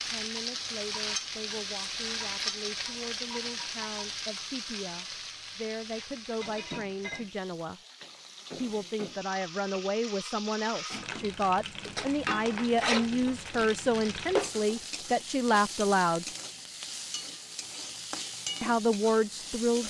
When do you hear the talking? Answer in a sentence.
The talking can be heard from 0.0 to 7.8 s, from 8.6 to 16.2 s and from 18.6 to 19.8 s.